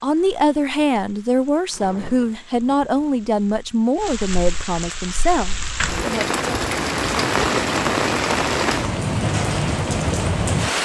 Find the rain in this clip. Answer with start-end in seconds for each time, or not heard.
0.0-10.8.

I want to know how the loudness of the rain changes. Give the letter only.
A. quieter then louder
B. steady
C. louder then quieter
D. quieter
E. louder
E.